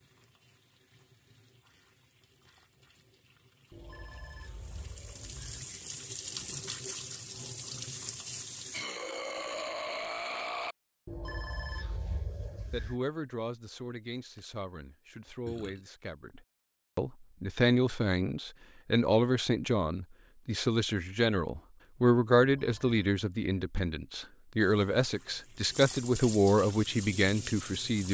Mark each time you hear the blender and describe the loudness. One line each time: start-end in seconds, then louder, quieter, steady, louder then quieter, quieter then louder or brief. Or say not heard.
not heard.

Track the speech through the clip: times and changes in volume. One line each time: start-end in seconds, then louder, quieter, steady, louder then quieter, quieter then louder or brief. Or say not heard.
12.7-28.0 louder.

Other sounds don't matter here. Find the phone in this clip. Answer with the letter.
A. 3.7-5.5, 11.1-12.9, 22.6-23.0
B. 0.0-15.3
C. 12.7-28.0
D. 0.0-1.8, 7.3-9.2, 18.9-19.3
A.